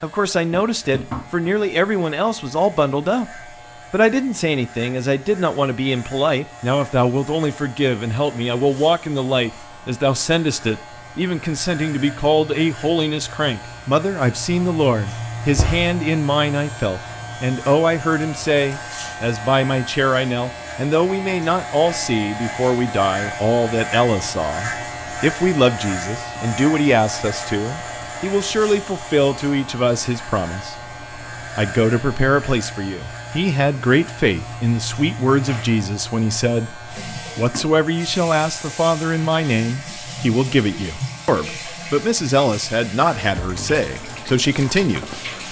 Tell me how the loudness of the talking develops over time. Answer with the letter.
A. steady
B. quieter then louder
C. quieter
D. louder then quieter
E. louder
A.